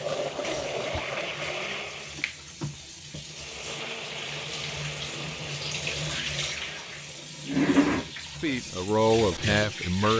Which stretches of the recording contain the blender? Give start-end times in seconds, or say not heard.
0.0-2.2, 3.2-7.3.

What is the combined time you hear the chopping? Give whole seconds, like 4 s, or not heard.
not heard.